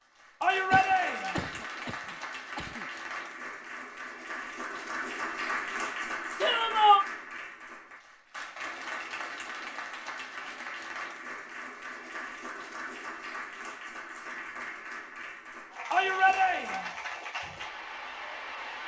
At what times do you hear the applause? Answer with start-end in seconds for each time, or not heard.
0.0-18.8.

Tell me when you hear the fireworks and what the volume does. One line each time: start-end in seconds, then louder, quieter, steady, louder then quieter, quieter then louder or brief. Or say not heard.
not heard.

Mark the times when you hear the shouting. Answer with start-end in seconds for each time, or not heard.
0.4-1.4, 6.4-7.0, 15.9-16.9.